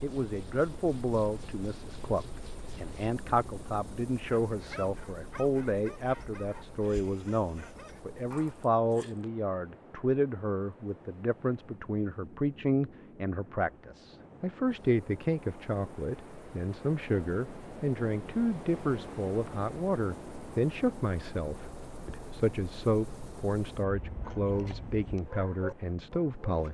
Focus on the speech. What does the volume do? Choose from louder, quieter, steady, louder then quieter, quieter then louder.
steady.